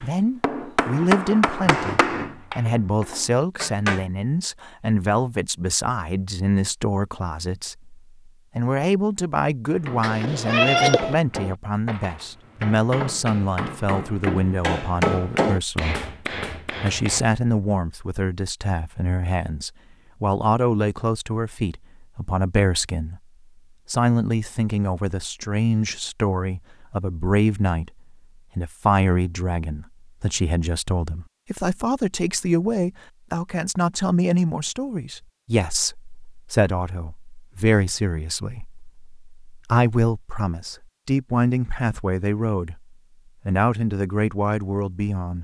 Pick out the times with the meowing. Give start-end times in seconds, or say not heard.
10.0-11.2.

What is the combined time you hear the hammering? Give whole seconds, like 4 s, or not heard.
12 s.